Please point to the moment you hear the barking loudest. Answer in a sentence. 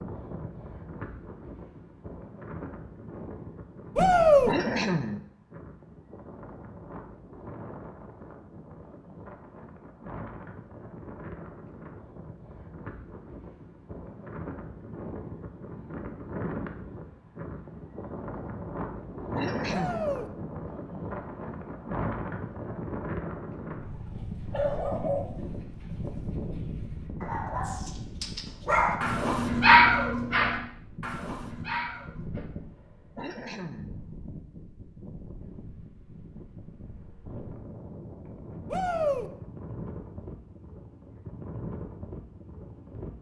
The volume of the barking peaks at 30 seconds.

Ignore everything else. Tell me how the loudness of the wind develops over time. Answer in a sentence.
The volume of the wind goes up, then down.